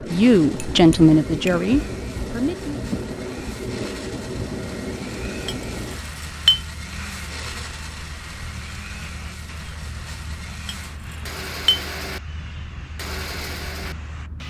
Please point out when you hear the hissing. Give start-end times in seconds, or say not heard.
0.0-14.4.